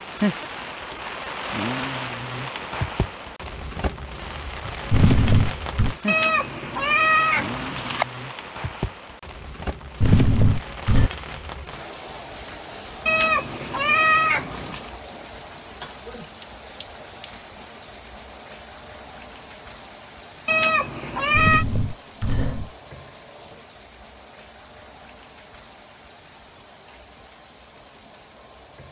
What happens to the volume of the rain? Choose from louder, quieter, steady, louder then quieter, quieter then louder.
quieter.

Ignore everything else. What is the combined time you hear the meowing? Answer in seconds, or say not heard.
5 s.